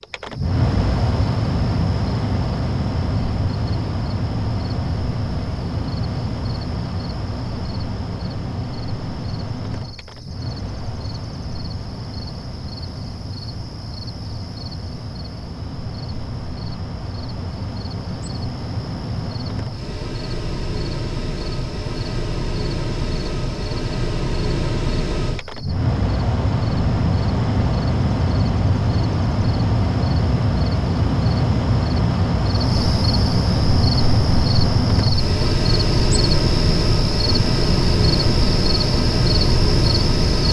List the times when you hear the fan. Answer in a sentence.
The fan can be heard from 0.0 to 40.4 s.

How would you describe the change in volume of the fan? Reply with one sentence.
The loudness of the fan goes down, then up.